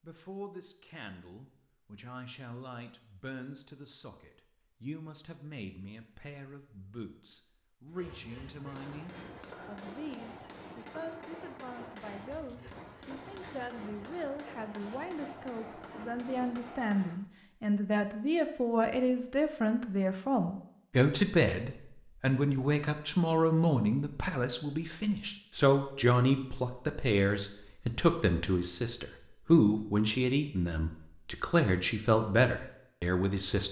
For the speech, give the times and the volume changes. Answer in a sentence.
The speech can be heard from 0.0 to 33.6 s, getting louder.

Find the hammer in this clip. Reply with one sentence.
You can hear the hammer from 7.8 to 17.3 s.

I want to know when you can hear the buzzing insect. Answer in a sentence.
The buzzing insect can't be heard in this clip.